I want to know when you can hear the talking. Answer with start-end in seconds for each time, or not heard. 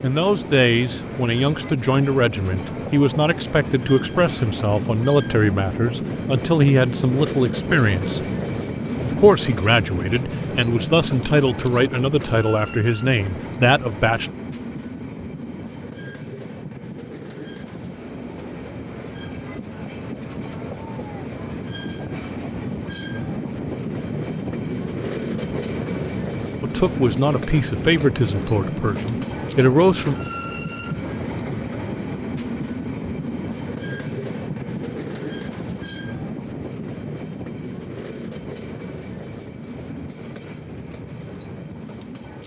0.0-8.2, 9.0-14.3, 26.6-30.1.